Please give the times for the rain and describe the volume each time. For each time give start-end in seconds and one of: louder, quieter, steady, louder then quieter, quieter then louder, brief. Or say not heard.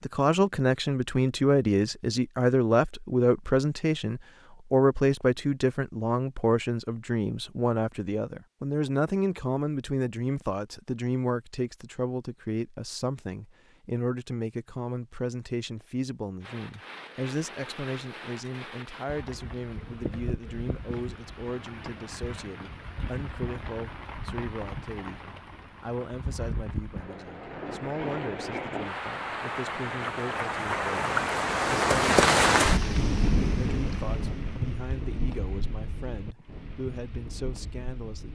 16.4-38.3 louder then quieter.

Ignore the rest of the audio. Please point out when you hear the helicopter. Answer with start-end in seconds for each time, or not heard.
not heard.